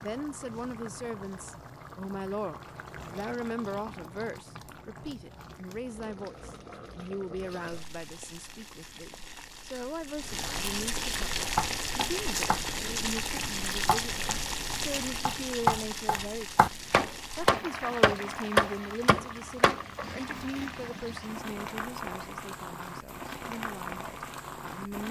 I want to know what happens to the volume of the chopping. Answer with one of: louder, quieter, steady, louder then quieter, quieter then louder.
louder.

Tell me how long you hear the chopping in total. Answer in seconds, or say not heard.
9 s.